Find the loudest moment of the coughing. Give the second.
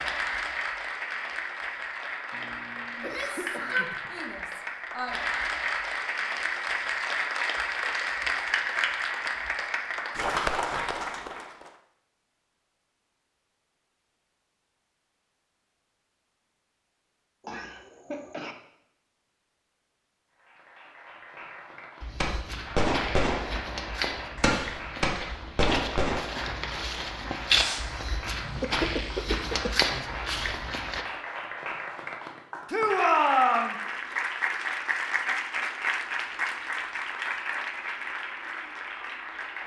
29 s.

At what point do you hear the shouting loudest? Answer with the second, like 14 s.
33 s.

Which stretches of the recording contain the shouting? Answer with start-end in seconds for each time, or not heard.
3.0-5.2, 32.7-33.8.